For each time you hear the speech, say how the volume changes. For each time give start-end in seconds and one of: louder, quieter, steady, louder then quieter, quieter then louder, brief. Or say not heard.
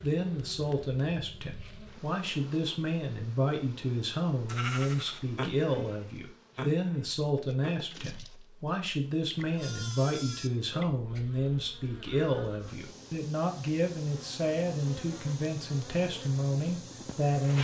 0.0-17.5 steady.